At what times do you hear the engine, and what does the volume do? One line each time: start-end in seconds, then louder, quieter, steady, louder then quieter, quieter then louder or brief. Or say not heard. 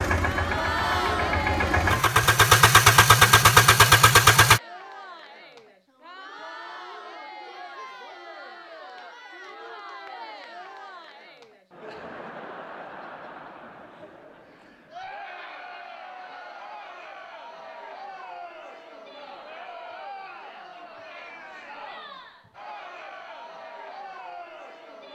0.0-4.6 louder.